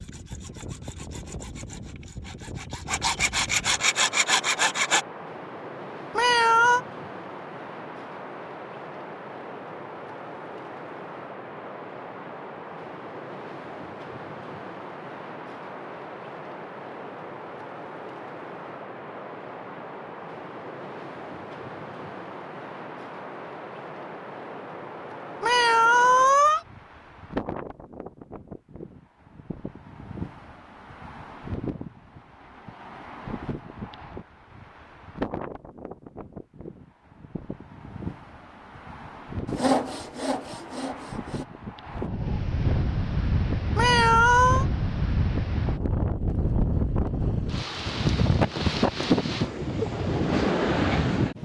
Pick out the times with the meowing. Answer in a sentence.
You can hear the meowing from 6.2 to 6.8 s, from 25.4 to 26.6 s and from 43.8 to 44.6 s.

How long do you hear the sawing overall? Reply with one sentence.
The sawing can be heard for 7 seconds in total.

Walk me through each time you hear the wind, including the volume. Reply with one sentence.
The wind can be heard from 0.0 to 51.4 s, getting louder.